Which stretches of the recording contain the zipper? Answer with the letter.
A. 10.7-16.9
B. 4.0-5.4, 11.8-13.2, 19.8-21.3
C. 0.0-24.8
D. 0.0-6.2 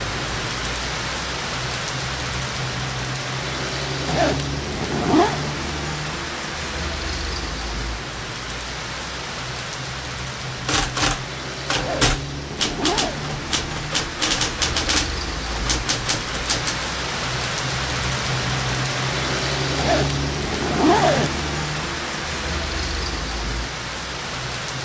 B.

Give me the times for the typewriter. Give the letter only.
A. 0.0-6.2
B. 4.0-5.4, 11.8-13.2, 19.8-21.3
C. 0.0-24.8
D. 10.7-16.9
D.